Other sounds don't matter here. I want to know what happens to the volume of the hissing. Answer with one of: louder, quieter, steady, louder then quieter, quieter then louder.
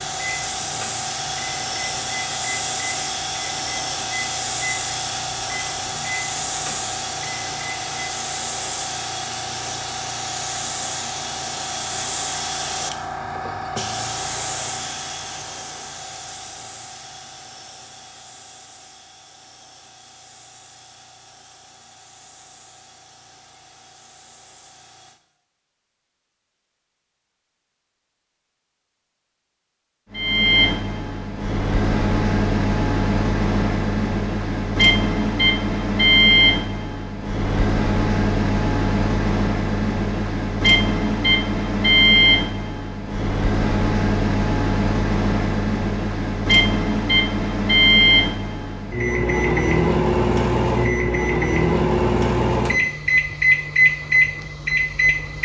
quieter.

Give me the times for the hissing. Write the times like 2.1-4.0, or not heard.
0.0-25.2.